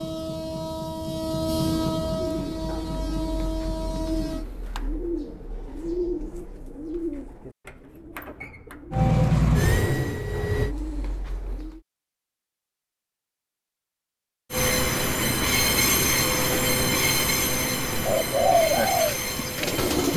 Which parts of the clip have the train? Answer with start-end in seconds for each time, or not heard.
0.0-4.5, 8.9-10.8, 14.5-20.1.